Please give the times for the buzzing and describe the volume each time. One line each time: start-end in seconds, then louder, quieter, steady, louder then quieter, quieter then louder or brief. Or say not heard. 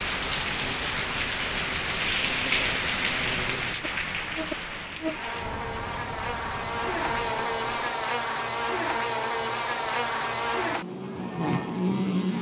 0.1-12.3 louder.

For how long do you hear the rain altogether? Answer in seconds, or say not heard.
8 s.